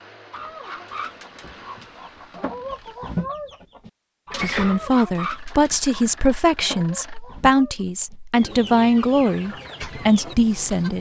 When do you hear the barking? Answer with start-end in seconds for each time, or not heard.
not heard.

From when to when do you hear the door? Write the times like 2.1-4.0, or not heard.
4.3-5.1.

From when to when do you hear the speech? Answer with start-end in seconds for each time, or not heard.
4.4-10.9.